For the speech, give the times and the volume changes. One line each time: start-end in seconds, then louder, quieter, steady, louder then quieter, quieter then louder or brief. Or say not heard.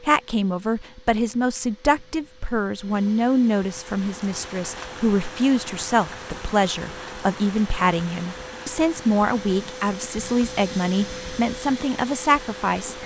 0.0-12.9 steady.